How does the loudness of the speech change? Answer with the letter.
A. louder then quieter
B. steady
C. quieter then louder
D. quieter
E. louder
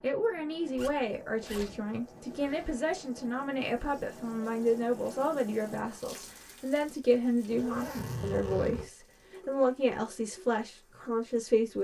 B.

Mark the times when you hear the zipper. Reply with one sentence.
You can hear the zipper from 0.8 to 2.8 s and from 7.5 to 8.9 s.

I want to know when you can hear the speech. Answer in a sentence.
You can hear the speech from 0.0 to 11.7 s.